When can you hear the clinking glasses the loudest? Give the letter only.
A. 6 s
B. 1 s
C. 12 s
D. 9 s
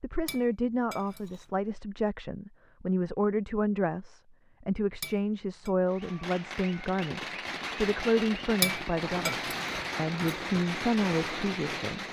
D.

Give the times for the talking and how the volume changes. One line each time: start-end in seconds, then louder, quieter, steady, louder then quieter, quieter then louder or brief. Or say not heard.
0.0-12.0 steady.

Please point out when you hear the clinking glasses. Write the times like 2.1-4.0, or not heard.
0.2-1.4, 5.0-5.7, 8.6-10.3.